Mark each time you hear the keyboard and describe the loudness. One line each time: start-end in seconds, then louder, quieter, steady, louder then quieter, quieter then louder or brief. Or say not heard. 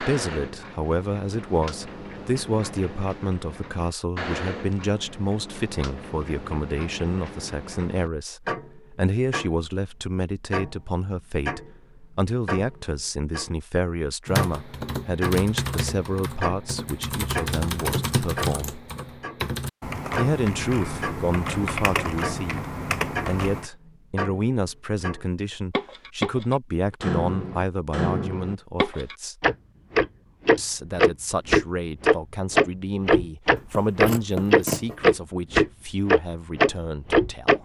14.2-23.7 steady.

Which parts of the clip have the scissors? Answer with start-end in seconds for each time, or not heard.
33.5-35.0.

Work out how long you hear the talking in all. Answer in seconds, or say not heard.
35 s.